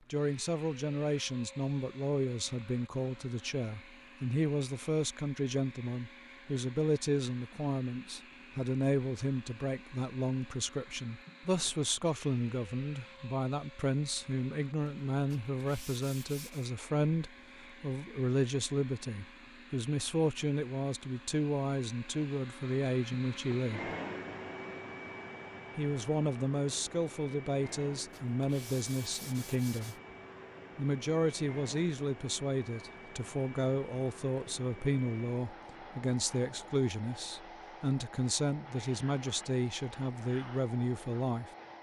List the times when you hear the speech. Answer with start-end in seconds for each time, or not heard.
0.1-23.9, 25.8-29.9, 30.8-41.5.